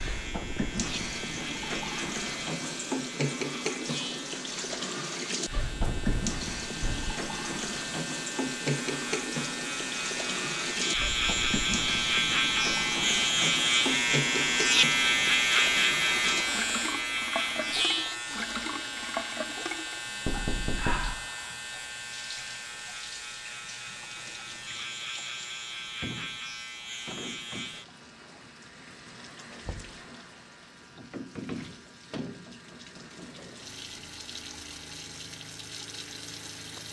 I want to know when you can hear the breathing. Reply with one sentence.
You can't hear the breathing here.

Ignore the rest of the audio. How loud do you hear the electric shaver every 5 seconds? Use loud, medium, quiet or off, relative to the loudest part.
quiet, quiet, loud, loud, quiet, quiet, quiet, off.